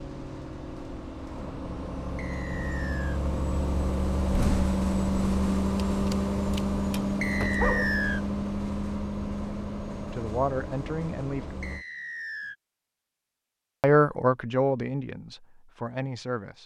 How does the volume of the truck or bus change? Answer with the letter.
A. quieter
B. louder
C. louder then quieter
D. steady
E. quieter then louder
C.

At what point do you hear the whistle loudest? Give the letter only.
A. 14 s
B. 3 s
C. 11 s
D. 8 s
D.